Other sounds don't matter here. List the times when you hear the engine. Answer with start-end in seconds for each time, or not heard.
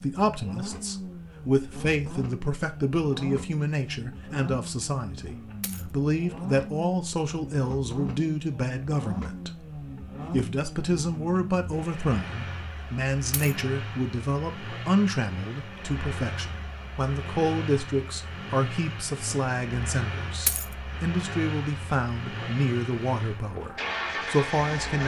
0.0-25.0.